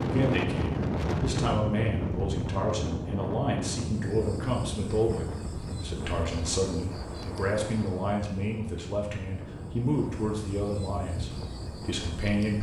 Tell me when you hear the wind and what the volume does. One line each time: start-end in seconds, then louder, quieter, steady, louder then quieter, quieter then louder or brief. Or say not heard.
0.0-12.3 quieter.